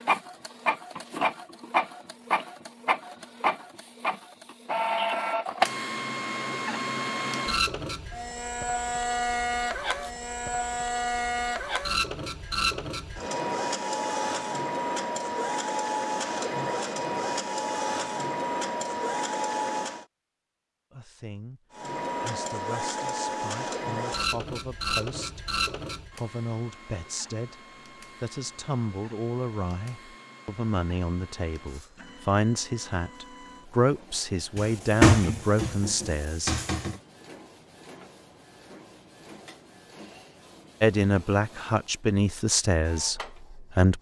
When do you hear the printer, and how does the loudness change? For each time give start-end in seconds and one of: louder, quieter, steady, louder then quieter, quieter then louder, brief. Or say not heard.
0.0-20.1 steady
21.7-43.9 quieter.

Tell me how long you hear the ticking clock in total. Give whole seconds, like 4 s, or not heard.
not heard.